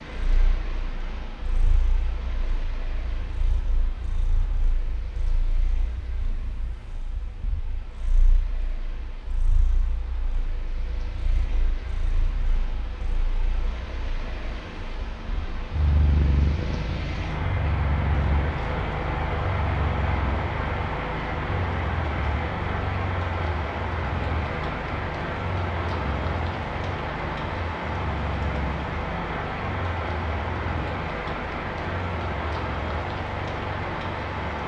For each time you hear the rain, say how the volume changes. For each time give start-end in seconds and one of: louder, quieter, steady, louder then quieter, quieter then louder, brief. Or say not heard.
0.0-34.6 louder.